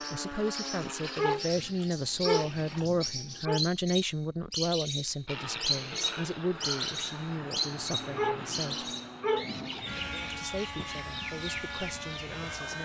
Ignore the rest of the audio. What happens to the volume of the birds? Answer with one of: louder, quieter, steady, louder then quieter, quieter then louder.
louder then quieter.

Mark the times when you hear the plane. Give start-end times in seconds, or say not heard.
0.0-2.9, 5.2-12.8.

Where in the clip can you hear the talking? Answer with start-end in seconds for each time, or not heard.
0.1-8.9, 10.3-12.8.